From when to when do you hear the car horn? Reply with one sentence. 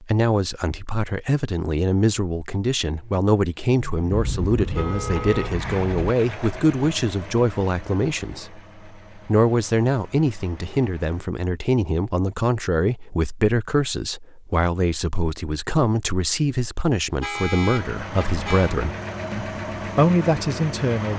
The car horn can be heard from 4.1 to 6.1 s and from 17.2 to 18.8 s.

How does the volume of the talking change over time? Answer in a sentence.
The loudness of the talking stays about the same.